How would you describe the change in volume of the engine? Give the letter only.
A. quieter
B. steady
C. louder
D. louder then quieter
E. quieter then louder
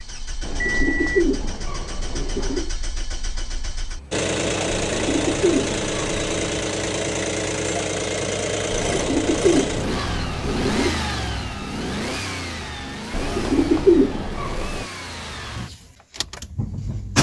D.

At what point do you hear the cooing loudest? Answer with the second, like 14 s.
14 s.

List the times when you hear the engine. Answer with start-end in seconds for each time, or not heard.
0.0-17.1.